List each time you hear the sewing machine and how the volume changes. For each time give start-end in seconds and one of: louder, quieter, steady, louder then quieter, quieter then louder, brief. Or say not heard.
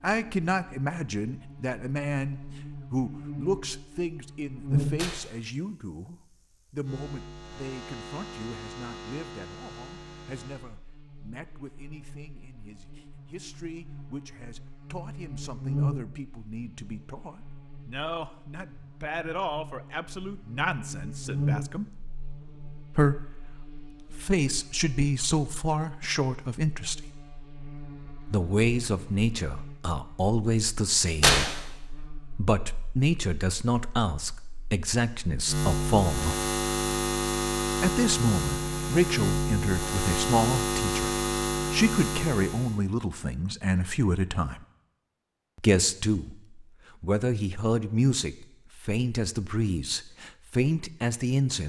not heard.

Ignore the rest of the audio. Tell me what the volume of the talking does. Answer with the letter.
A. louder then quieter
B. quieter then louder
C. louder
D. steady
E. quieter
B.